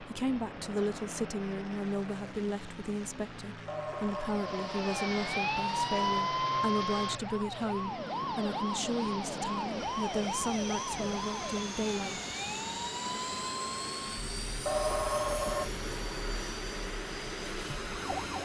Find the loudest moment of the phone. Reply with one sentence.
The volume of the phone peaks at 15 seconds.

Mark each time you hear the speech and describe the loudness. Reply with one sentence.
You can hear the speech from 0.0 to 12.2 s, at a steady volume.